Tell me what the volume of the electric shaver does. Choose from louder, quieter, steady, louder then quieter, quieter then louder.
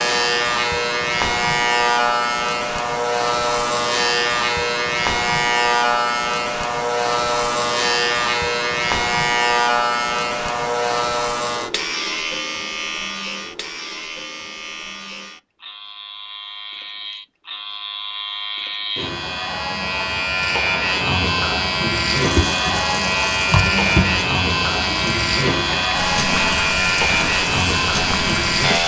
quieter then louder.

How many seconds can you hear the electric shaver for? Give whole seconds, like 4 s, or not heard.
29 s.